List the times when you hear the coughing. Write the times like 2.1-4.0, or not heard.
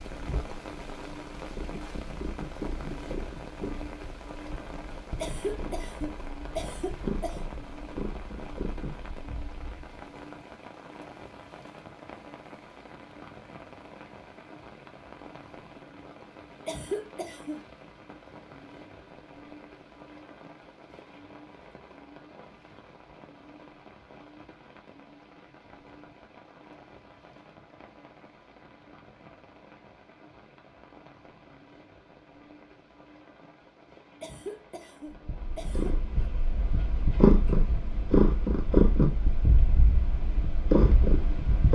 5.2-7.4, 16.6-17.6, 34.2-36.3.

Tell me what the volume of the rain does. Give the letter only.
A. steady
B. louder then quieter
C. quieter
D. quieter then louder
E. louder
C.